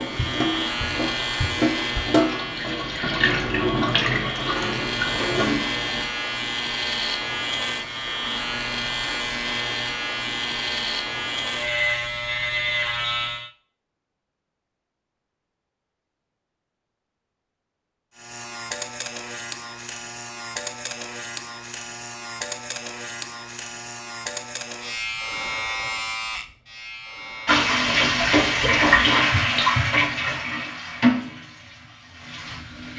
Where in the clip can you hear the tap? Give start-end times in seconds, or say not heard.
0.0-6.0, 27.4-32.9.